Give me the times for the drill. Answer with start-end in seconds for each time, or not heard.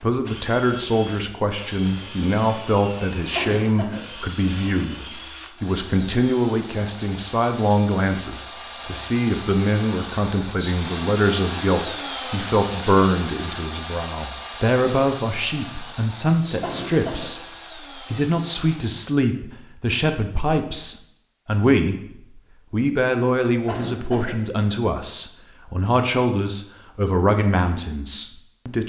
0.1-19.0.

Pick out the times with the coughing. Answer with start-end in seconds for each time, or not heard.
3.4-4.0, 16.6-17.3, 23.6-24.4.